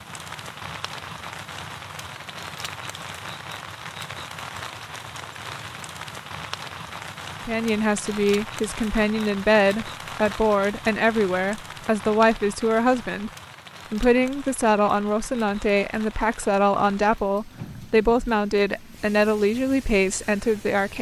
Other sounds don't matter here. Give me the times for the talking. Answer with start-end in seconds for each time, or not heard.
7.5-13.3, 13.9-20.9.